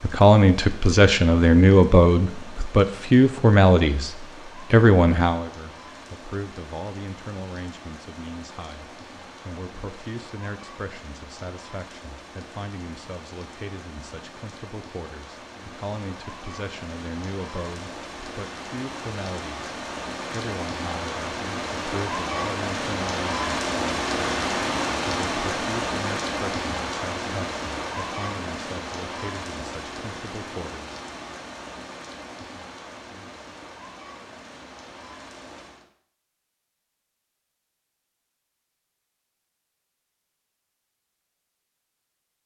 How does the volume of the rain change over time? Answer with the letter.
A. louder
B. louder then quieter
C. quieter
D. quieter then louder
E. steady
B.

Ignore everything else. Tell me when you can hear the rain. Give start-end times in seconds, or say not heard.
0.0-35.9.